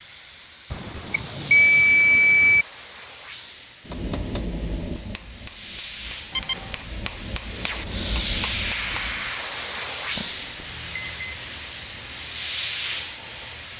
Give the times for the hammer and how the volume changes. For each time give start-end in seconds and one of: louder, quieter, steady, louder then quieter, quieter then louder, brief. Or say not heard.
3.9-9.3 quieter then louder.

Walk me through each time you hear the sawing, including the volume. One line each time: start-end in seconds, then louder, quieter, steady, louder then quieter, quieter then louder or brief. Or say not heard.
not heard.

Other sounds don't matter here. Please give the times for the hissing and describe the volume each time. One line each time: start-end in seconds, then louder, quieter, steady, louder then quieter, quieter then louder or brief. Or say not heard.
0.0-13.7 louder.